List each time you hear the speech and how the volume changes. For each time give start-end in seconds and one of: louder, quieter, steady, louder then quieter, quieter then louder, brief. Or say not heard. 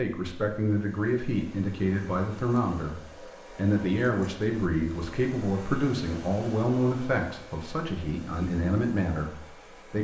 0.0-9.9 steady.